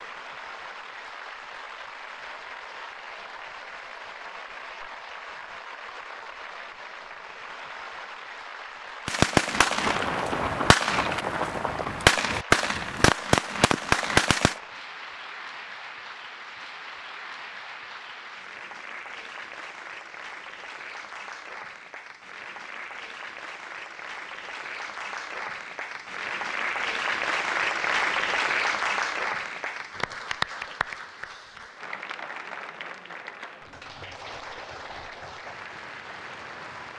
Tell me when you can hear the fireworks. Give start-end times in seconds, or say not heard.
9.1-14.6.